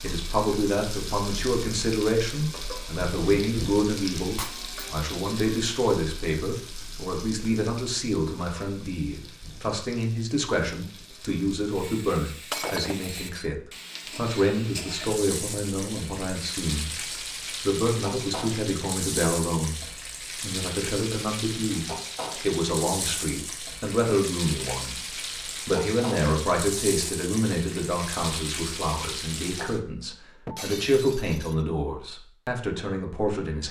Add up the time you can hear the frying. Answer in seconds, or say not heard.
30 s.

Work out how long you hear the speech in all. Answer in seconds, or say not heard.
32 s.